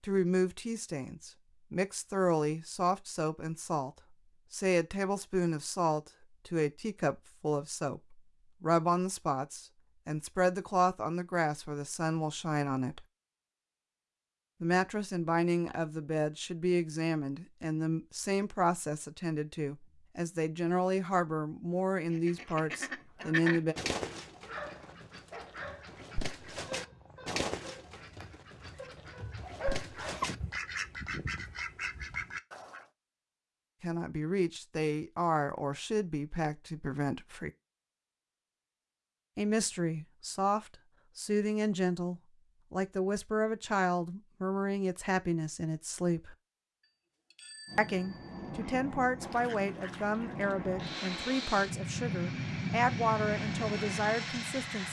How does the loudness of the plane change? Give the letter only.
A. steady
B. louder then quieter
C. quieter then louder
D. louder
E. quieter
D.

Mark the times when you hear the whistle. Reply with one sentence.
The whistle can't be heard in this clip.